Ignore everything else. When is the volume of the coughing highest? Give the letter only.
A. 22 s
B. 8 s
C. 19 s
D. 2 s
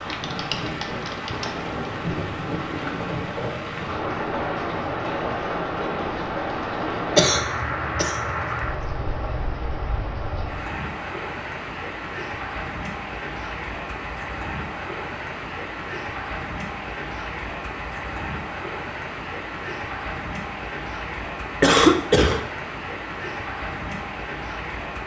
A.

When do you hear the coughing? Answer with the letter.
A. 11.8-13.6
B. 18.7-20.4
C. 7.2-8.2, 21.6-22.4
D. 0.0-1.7
C.